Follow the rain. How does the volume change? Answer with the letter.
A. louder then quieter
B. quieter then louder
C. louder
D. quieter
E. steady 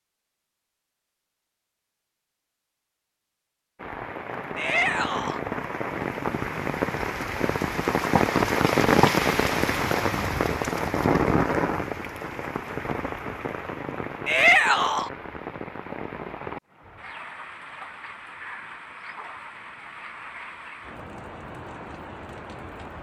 A.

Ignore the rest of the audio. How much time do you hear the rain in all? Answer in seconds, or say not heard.
19 s.